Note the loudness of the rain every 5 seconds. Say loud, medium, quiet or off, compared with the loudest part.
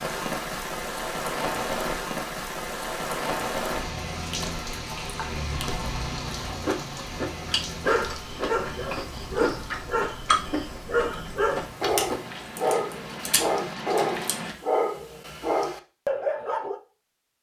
loud, medium, medium, off.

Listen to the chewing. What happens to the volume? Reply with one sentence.
The volume of the chewing goes up.